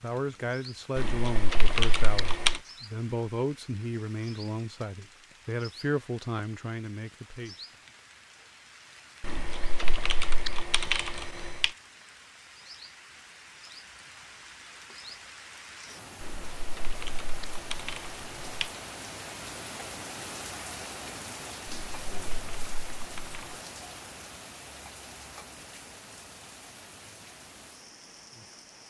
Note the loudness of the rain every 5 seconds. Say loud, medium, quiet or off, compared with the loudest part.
medium, medium, medium, loud, loud, medium.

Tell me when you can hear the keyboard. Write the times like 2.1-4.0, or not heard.
0.9-2.6, 9.2-11.7, 16.2-18.7, 21.6-23.6.